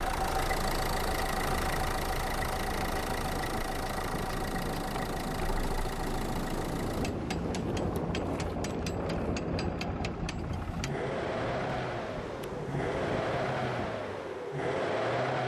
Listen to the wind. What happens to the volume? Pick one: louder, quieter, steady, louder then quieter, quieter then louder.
louder then quieter.